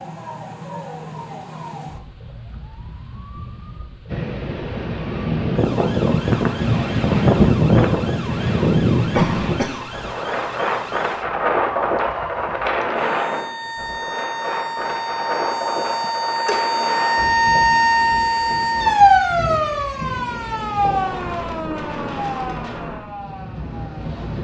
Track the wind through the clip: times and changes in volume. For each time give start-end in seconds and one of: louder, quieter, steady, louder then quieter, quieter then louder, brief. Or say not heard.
4.0-24.4 quieter.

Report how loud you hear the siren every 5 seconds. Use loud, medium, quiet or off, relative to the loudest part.
quiet, quiet, quiet, loud, medium.